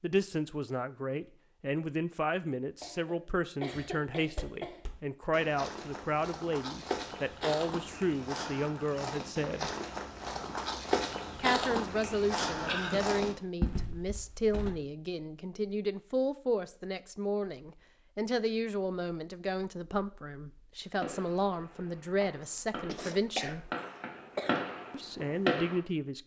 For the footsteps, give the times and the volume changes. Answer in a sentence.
You can hear the footsteps from 4.2 to 14.7 s, getting louder.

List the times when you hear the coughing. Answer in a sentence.
The coughing can be heard from 2.8 to 4.8 s, from 12.2 to 13.1 s and from 22.9 to 24.6 s.